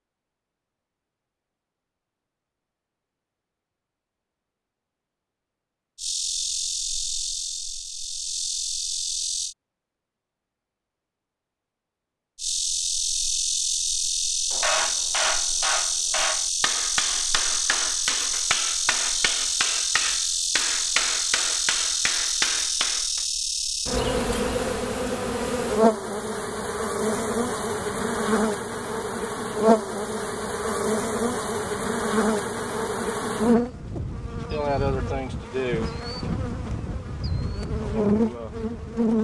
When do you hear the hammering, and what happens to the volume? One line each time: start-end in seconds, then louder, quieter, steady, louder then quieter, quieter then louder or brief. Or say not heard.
14.5-23.2 steady.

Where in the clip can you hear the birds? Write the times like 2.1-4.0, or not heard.
not heard.